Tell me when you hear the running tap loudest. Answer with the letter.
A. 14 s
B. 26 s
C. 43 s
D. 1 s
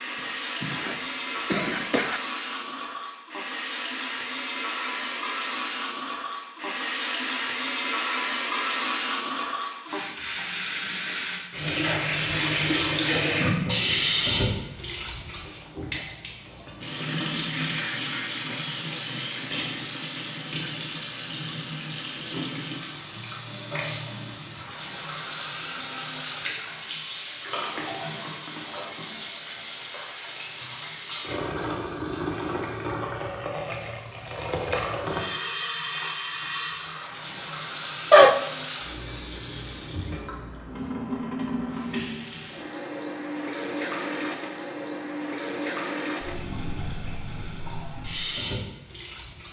A.